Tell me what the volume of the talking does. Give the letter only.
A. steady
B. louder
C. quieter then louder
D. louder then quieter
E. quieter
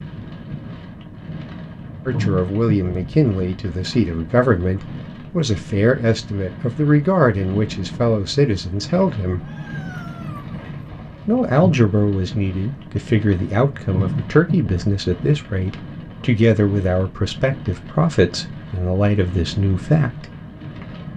A.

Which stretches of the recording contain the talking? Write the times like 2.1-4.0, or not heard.
2.0-9.4, 11.2-20.2.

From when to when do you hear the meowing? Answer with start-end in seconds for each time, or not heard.
9.4-10.6.